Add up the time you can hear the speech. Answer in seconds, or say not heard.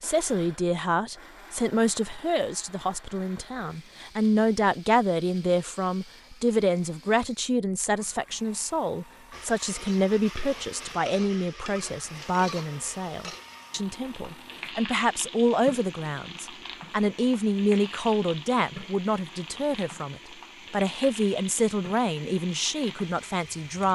24 s.